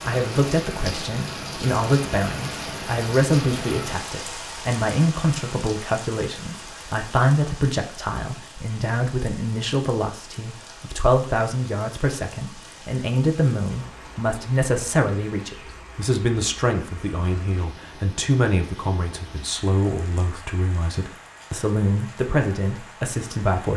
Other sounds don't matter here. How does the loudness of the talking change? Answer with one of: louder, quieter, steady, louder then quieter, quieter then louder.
steady.